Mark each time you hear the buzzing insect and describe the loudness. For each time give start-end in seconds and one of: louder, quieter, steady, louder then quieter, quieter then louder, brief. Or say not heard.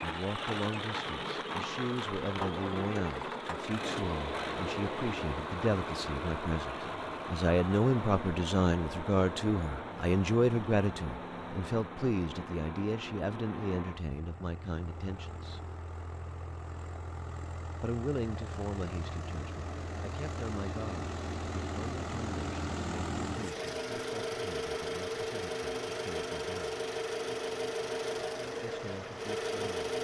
not heard.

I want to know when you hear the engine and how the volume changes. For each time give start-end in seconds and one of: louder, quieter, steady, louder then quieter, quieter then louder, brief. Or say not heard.
0.0-29.9 quieter then louder.